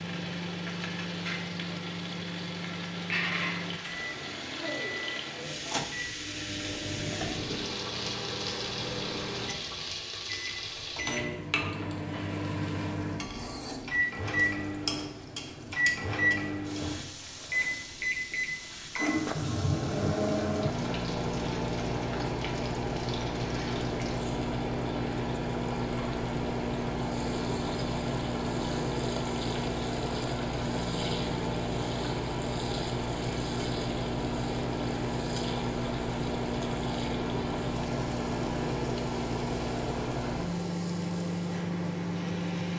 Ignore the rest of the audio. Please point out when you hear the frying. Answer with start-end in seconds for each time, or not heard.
0.0-42.7.